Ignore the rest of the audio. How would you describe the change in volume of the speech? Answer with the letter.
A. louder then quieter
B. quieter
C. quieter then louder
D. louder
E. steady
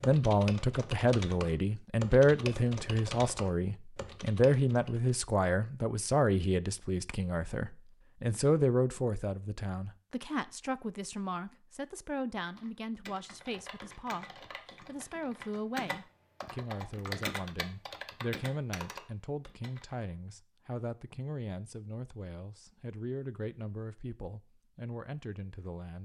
B.